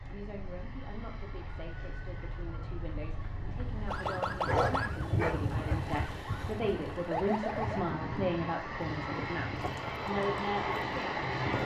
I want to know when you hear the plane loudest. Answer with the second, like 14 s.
11 s.